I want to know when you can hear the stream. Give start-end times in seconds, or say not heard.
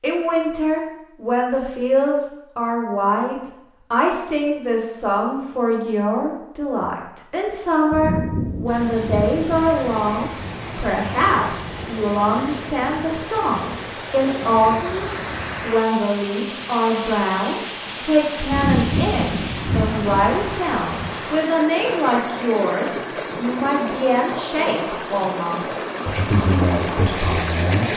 8.7-27.9.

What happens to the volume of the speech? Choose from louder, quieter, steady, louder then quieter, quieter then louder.
steady.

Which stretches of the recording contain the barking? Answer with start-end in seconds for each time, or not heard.
not heard.